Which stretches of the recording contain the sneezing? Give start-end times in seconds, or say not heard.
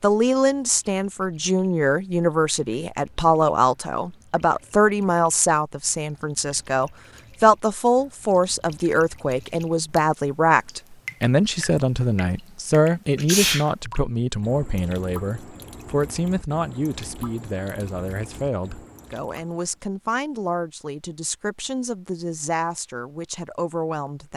13.2-13.7.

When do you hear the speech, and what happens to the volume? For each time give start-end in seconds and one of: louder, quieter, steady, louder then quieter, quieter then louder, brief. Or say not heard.
0.0-24.3 quieter.